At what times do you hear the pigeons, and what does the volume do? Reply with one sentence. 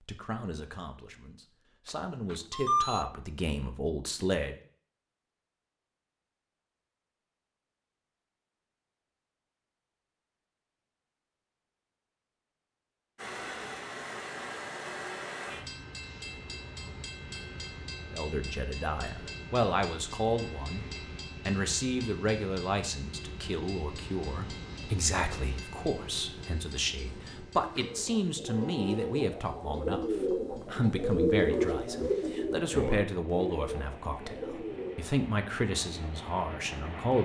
The pigeons can be heard from 26.9 to 35.1 s, getting louder then quieter.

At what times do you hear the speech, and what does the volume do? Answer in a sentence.
You can hear the speech from 0.0 to 4.5 s, getting quieter then louder; briefly from 18.1 to 20.9 s; and from 21.4 to 37.1 s, at a steady volume.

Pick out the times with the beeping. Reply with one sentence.
You can hear the beeping from 2.3 to 3.0 s.